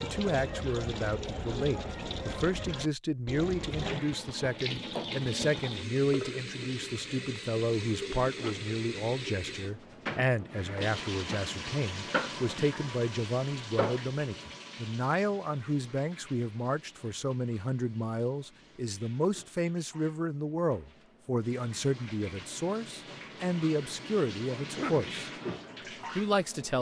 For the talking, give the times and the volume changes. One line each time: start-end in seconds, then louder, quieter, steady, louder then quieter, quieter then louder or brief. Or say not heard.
0.0-25.3 steady
26.1-26.7 brief.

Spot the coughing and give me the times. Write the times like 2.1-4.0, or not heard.
8.2-8.8, 24.6-25.1.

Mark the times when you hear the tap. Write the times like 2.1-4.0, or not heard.
0.0-26.7.